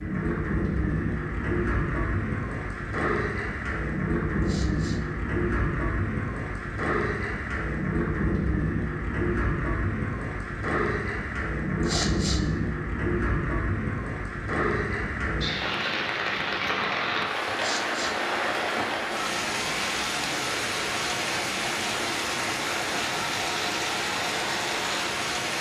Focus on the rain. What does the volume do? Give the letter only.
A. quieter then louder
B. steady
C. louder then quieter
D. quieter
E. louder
B.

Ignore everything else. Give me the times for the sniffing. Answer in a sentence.
You can hear the sniffing from 4.4 to 5.0 s, from 11.8 to 12.4 s and from 17.6 to 18.1 s.